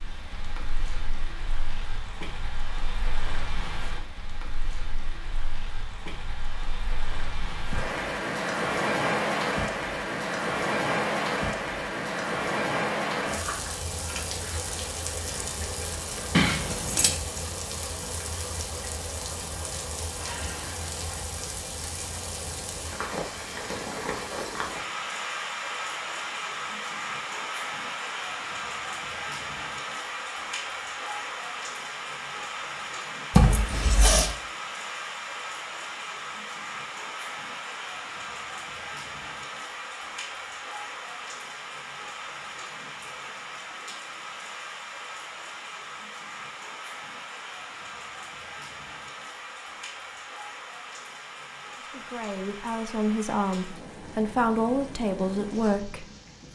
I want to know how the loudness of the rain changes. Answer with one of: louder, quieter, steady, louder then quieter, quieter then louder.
quieter.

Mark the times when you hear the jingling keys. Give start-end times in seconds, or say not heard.
16.3-17.2, 33.3-34.4.